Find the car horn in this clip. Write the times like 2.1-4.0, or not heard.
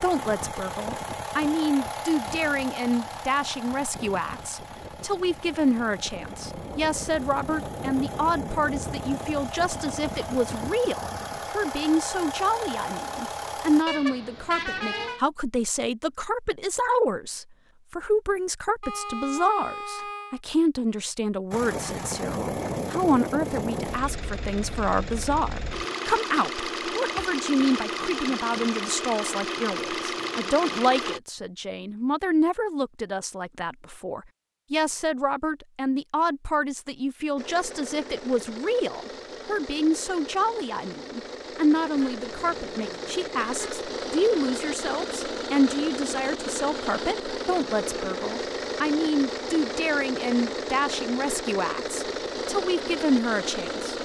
13.8-15.2, 18.8-20.4, 42.0-43.9.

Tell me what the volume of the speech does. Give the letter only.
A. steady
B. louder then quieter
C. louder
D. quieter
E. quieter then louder
A.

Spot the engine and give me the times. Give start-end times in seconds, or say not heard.
0.0-13.8, 21.5-31.2, 37.4-53.9.